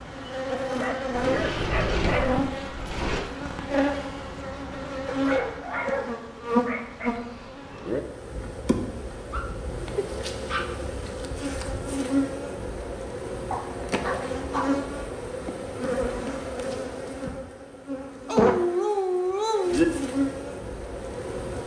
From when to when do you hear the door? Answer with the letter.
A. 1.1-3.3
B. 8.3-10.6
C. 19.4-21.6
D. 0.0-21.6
A.